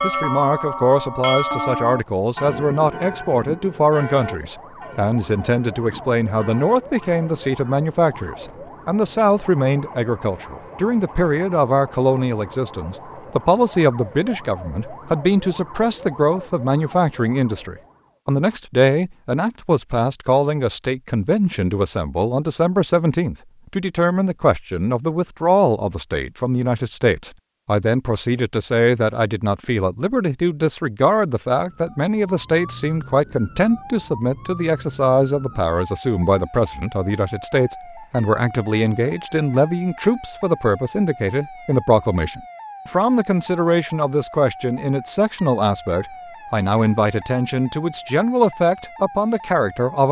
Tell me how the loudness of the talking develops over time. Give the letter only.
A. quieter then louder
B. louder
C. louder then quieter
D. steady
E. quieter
D.